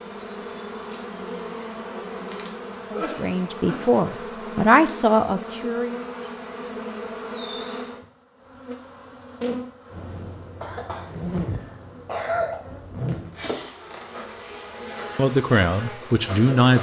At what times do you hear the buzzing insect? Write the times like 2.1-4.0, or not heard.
0.0-16.7.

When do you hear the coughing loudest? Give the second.
12 s.